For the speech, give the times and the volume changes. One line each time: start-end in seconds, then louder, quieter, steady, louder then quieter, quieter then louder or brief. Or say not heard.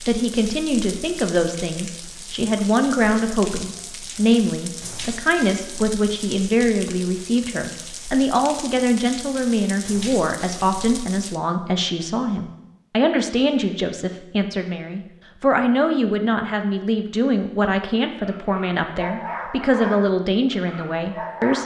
0.1-21.6 steady.